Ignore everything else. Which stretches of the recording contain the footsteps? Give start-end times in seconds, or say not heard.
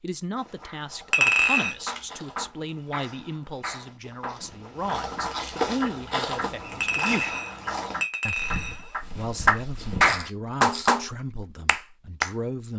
0.3-10.2.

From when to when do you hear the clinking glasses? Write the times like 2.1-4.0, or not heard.
1.1-1.8, 6.8-8.9.